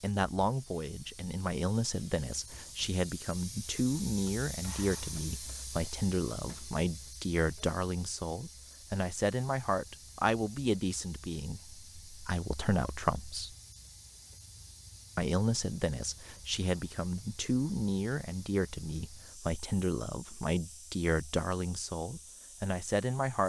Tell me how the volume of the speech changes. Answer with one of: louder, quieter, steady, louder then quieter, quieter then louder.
steady.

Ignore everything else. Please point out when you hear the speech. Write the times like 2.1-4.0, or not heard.
0.0-13.6, 15.2-23.4.